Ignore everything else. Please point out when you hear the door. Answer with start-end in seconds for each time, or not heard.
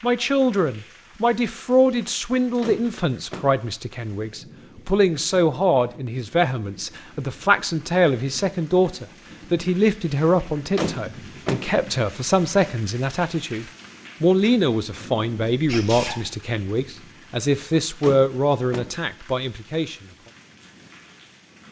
2.6-3.5, 10.8-11.7, 18.0-18.9.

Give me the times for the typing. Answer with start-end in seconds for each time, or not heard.
not heard.